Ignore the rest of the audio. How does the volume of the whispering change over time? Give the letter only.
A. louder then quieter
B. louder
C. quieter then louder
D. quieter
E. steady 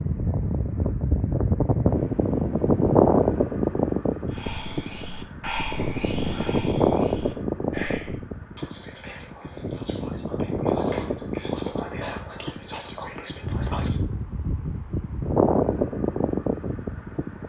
C.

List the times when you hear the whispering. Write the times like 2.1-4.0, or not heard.
4.3-14.0.